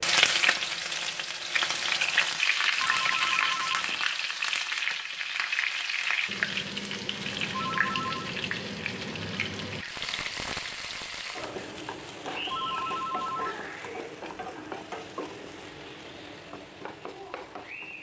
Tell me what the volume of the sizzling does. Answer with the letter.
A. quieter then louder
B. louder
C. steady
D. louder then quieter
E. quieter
E.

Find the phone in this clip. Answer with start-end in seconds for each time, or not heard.
2.8-4.0, 7.7-8.2, 12.5-13.7.